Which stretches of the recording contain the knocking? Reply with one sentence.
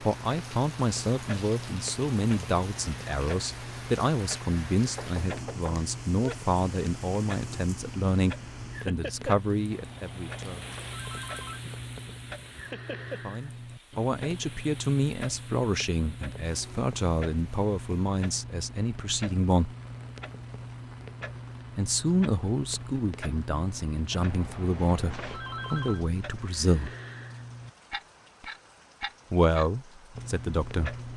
The knocking can be heard from 4.8 to 6.3 s.